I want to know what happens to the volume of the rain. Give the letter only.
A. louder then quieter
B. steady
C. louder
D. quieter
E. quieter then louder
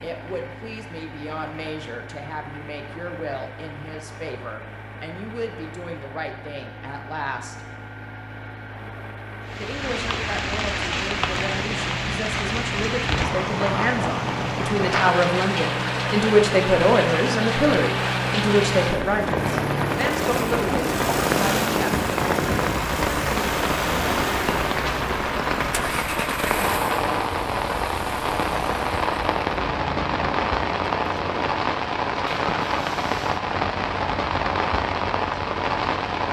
B.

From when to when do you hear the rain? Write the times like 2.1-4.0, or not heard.
9.4-36.2.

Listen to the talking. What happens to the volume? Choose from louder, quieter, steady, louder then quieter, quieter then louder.
louder.